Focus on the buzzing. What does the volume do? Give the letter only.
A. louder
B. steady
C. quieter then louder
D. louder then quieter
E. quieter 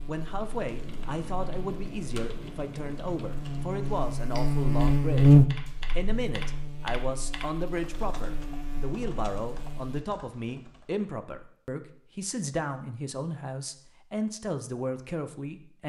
D.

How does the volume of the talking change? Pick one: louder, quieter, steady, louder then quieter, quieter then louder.
steady.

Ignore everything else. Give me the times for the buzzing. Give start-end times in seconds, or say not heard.
0.0-10.1.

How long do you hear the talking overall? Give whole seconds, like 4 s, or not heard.
16 s.